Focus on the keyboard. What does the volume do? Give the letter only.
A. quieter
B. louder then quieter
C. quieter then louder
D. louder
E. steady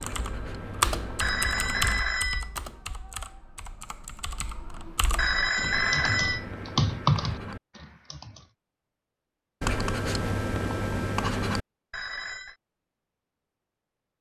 C.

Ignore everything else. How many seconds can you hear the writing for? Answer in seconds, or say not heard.
6 s.